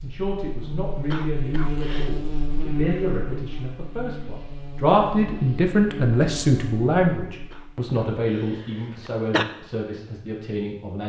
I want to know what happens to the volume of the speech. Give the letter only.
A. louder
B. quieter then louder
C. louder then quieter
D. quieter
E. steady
C.